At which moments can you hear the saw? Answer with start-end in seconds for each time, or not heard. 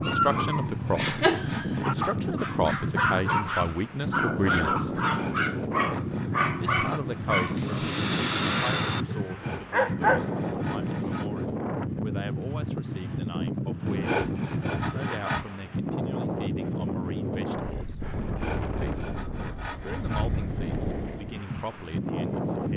0.1-2.5, 5.0-7.4, 9.2-11.5, 13.8-15.6, 18.2-20.4.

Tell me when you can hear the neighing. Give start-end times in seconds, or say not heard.
not heard.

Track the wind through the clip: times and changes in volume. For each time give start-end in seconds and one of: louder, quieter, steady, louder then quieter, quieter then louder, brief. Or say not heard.
0.0-22.7 steady.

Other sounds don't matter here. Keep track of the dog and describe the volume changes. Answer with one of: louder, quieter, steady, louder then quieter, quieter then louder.
steady.